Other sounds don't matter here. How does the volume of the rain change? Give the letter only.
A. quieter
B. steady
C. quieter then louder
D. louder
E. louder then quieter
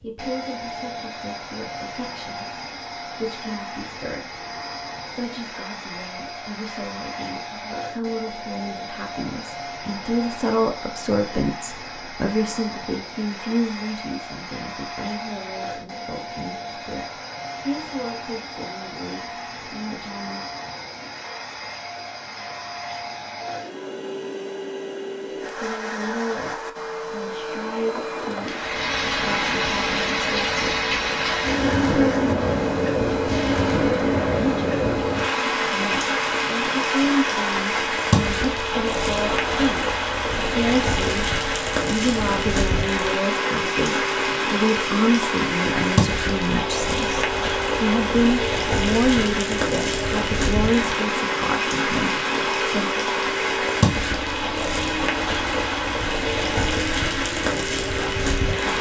B.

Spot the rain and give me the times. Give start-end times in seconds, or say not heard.
28.4-58.7.